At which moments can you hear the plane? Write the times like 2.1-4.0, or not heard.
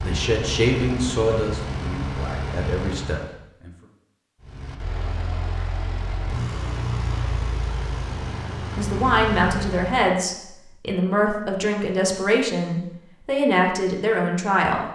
0.0-3.4, 4.4-10.2.